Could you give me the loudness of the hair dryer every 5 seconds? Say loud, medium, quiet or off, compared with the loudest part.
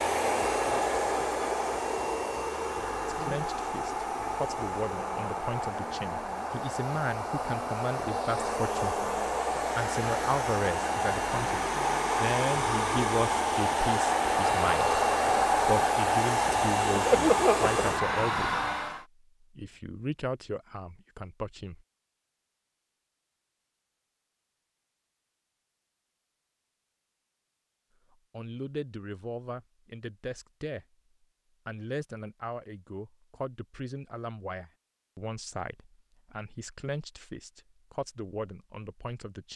medium, medium, loud, loud, off, off, off, off.